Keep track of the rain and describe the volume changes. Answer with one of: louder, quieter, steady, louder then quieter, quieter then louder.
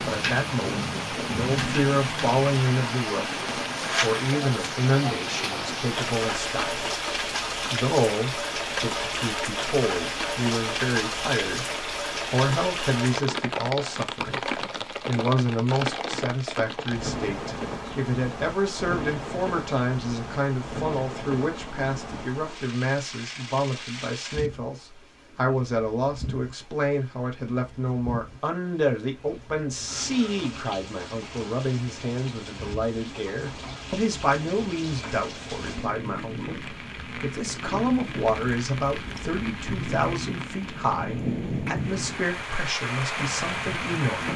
quieter then louder.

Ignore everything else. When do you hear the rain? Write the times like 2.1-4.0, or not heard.
0.0-44.3.